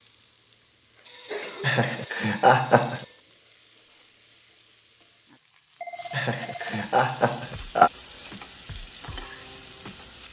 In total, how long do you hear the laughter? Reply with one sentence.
You can hear the laughter for 3 seconds altogether.